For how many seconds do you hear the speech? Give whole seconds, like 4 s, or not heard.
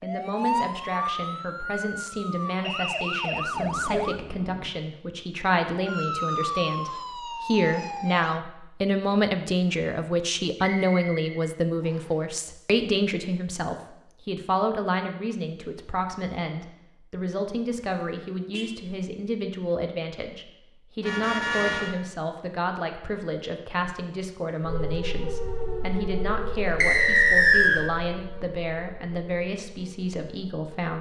31 s.